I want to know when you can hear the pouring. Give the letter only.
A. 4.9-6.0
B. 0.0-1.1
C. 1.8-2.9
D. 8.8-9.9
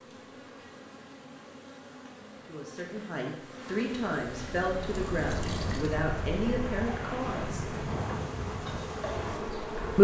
A.